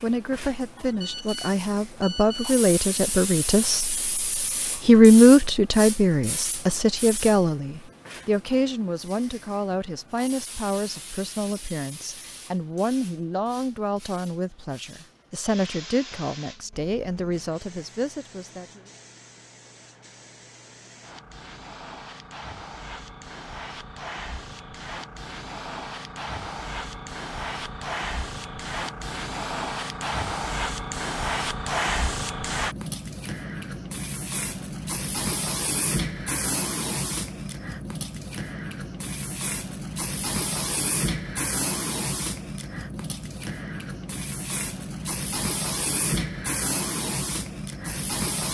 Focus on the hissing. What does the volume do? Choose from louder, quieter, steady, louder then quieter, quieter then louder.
quieter then louder.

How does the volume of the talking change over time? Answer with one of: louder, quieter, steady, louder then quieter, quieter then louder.
louder then quieter.